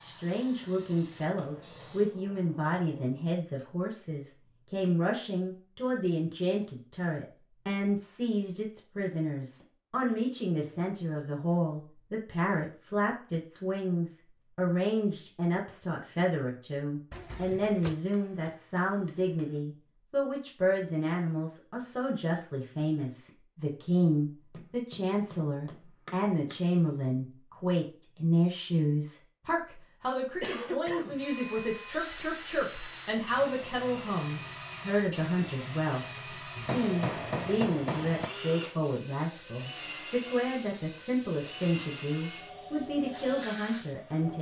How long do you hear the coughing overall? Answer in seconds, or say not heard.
2 s.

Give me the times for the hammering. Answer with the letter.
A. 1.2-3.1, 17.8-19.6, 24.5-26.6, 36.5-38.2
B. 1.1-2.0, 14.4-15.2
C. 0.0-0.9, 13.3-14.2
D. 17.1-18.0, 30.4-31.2
A.